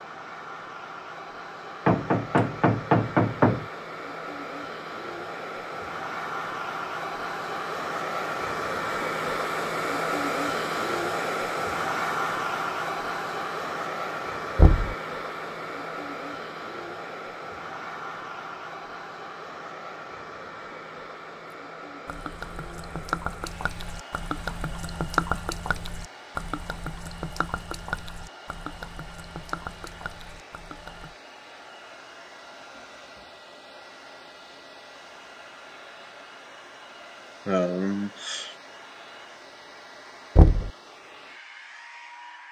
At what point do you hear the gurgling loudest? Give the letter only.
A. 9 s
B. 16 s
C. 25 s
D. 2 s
C.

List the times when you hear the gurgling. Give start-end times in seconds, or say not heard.
22.1-31.1.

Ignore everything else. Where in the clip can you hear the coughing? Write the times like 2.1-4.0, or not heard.
37.5-38.5.